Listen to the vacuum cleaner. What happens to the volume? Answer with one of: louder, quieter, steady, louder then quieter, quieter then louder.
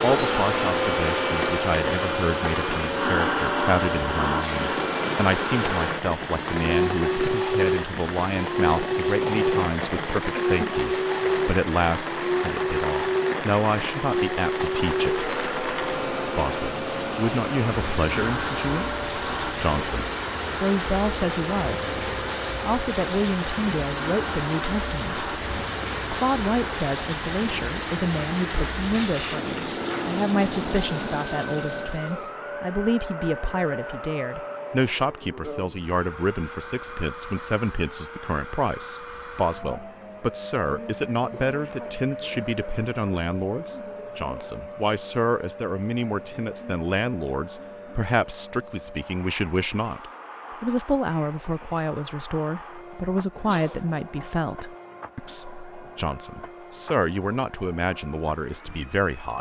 quieter.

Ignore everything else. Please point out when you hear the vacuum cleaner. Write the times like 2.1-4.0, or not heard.
0.0-59.3.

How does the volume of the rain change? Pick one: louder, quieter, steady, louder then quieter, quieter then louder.
steady.